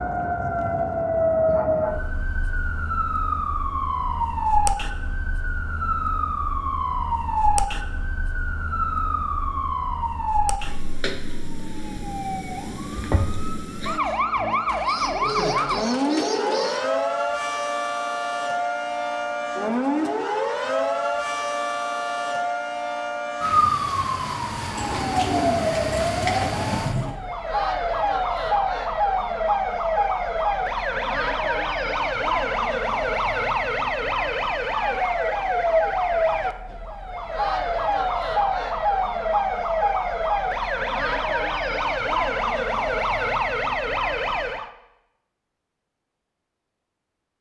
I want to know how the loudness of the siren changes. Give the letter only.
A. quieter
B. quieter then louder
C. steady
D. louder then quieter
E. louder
C.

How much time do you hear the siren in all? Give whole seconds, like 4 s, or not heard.
45 s.